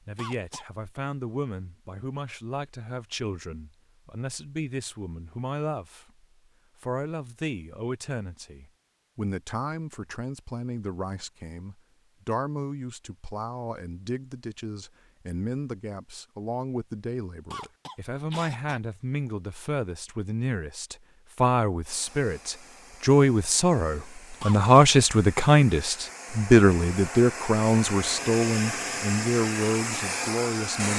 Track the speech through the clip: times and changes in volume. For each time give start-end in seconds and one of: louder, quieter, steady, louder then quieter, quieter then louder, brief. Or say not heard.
0.1-30.9 louder.